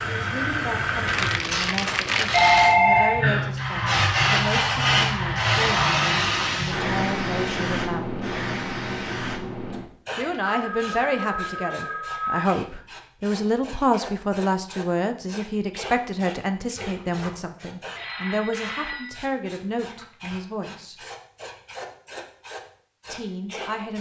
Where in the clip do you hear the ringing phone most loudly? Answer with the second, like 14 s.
3 s.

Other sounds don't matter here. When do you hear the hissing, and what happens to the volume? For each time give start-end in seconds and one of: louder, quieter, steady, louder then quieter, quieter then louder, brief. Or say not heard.
0.0-23.9 quieter.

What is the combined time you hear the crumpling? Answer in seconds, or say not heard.
2 s.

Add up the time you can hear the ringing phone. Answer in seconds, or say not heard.
4 s.